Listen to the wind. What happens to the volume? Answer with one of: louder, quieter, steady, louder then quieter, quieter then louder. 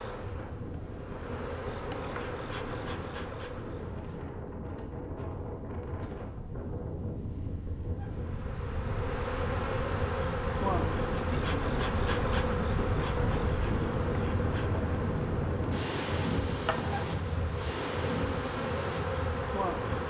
louder.